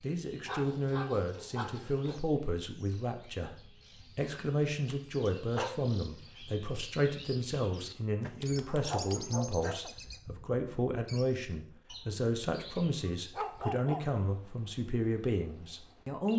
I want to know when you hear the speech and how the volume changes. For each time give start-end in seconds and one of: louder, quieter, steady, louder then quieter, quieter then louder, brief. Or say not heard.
0.0-16.3 steady.